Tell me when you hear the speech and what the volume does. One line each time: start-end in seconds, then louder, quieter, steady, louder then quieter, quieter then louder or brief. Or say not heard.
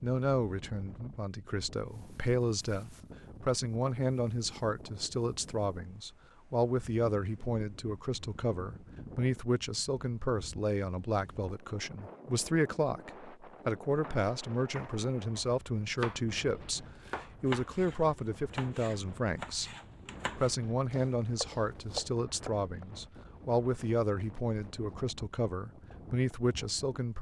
0.0-27.1 steady.